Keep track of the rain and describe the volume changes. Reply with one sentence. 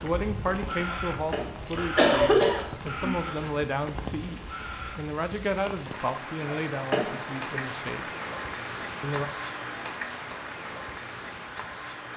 The volume of the rain goes up.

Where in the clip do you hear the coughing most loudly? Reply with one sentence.
The loudest moment of the coughing is at 2 seconds.